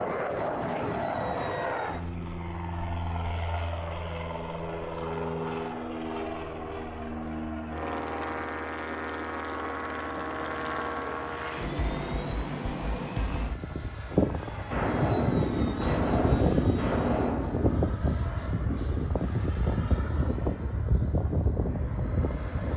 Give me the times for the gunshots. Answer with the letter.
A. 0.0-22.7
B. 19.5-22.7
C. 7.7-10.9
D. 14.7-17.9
D.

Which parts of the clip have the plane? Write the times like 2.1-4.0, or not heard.
0.0-22.7.